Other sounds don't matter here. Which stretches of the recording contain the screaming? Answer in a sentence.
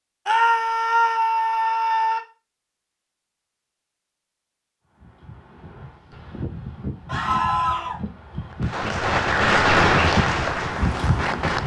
You can hear the screaming from 0.2 to 2.2 s and from 7.0 to 8.0 s.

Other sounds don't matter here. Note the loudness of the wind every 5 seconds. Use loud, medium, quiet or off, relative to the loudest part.
off, medium, loud.